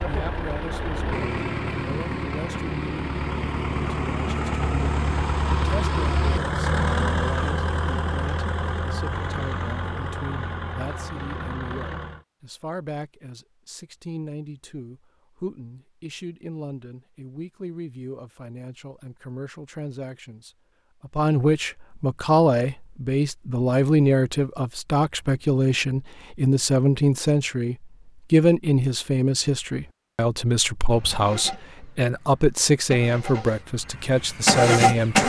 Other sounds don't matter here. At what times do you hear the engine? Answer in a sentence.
You can hear the engine from 0.0 to 12.2 s and from 30.9 to 35.2 s.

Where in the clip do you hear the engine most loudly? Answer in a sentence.
The volume of the engine peaks at 35 seconds.